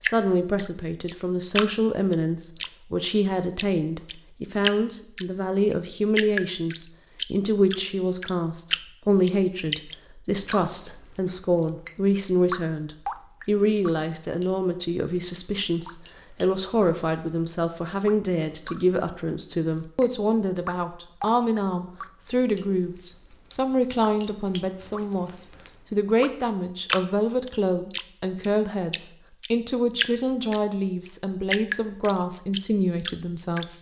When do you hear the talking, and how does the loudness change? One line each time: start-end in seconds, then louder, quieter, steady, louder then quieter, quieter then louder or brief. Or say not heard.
0.0-33.7 steady.